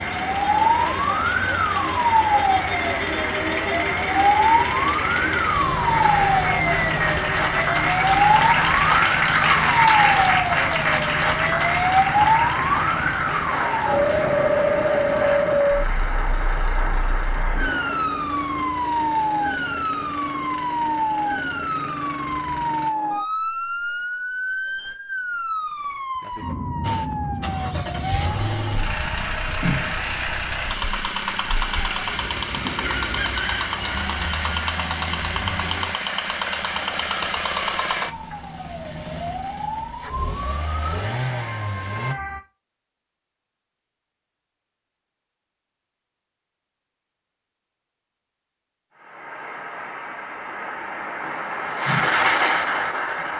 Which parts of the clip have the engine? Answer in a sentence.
You can hear the engine from 0.0 to 22.9 s and from 26.8 to 42.1 s.